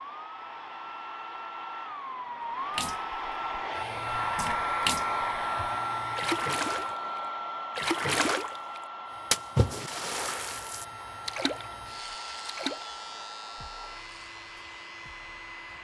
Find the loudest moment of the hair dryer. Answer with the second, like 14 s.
5 s.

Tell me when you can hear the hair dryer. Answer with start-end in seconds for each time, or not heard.
0.0-15.7.